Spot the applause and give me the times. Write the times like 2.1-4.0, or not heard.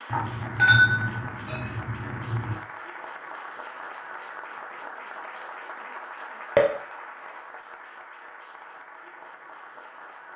0.0-10.3.